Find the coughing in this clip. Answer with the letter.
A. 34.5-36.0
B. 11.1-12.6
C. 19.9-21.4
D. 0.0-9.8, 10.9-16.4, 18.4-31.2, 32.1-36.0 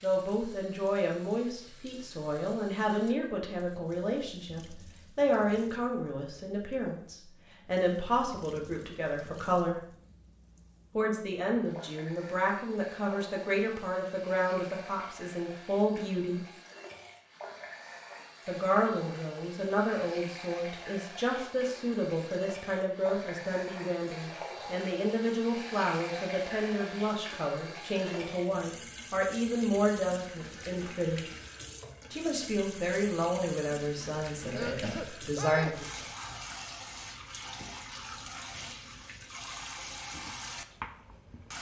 A.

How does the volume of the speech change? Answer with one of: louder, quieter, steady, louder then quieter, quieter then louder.
steady.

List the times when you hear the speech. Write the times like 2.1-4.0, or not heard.
0.0-9.8, 10.9-16.4, 18.4-31.2, 32.1-36.0.